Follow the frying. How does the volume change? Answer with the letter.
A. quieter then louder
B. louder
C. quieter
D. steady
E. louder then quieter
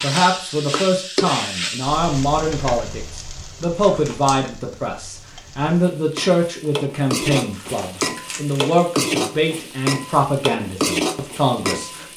A.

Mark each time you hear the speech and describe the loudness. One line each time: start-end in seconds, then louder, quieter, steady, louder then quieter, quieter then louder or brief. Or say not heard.
0.0-12.1 steady.